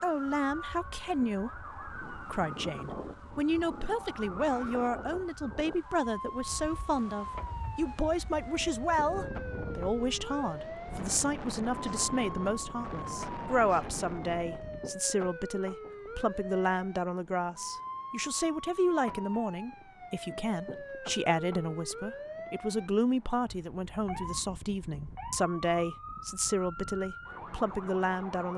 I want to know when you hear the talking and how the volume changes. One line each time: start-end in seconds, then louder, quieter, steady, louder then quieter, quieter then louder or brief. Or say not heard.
0.0-28.5 steady.